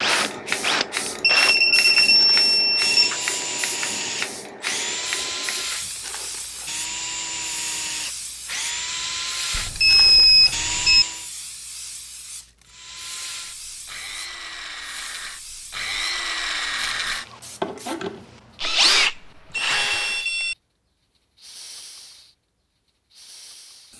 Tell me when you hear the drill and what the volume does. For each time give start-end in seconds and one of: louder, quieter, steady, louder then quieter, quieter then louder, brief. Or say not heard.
0.0-11.3 steady
12.7-20.2 louder.